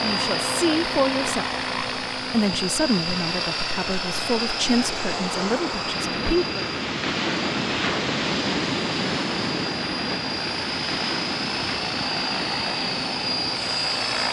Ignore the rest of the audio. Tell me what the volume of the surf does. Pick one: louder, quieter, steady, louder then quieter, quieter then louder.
louder then quieter.